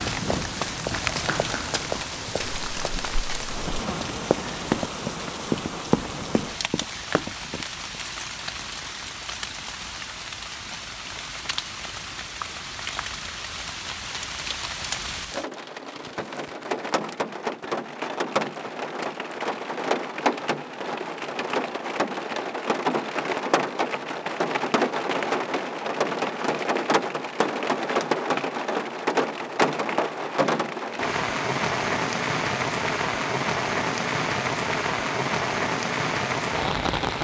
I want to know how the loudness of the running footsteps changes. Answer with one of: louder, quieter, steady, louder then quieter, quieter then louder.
quieter then louder.